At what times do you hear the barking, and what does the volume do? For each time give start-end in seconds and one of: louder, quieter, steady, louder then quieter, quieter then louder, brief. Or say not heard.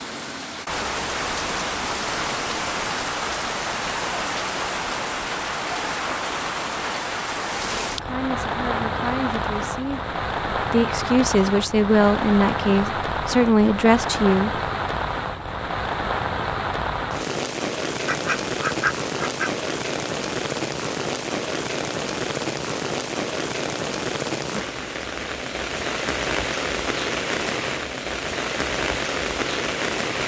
not heard.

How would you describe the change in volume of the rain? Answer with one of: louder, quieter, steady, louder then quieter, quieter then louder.
steady.